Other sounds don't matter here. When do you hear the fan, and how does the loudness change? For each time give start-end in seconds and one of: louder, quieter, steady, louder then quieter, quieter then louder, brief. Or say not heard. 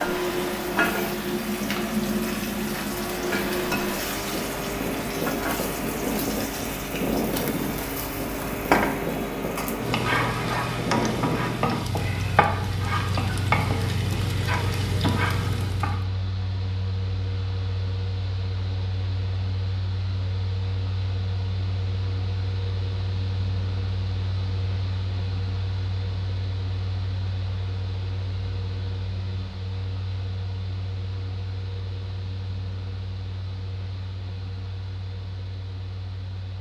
0.0-36.5 quieter.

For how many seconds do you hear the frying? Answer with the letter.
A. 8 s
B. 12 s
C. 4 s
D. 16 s
D.